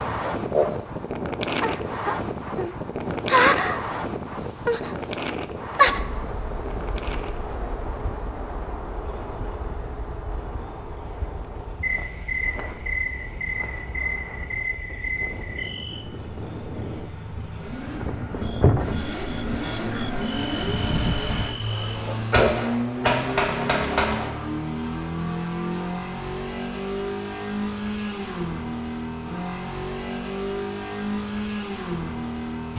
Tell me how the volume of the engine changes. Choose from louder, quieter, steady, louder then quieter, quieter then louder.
louder.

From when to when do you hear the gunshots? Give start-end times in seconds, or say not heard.
22.3-24.3.